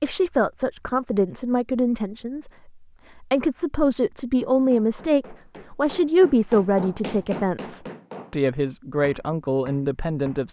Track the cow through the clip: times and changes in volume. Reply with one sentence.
The cow can't be heard in this clip.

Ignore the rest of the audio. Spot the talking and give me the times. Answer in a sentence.
You can hear the talking from 0.0 to 10.4 s.